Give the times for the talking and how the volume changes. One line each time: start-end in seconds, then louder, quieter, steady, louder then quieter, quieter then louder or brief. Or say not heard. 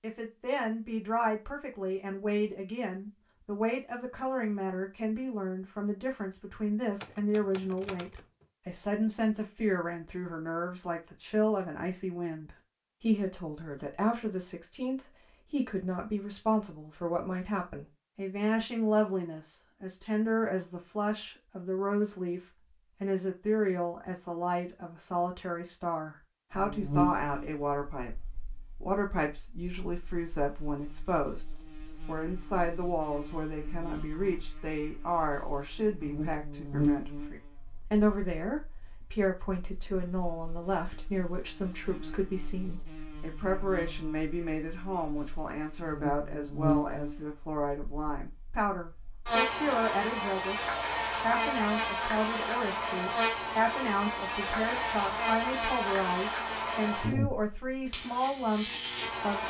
0.0-28.2 steady
28.8-59.4 steady.